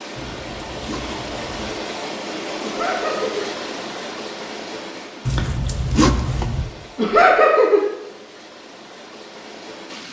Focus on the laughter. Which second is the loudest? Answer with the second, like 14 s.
7 s.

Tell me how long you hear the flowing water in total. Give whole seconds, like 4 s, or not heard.
10 s.